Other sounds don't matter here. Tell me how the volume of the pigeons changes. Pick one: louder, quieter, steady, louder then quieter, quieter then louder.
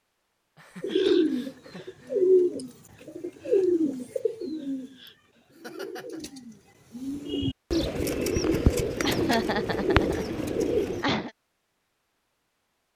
quieter then louder.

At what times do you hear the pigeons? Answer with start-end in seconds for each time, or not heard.
0.8-11.1.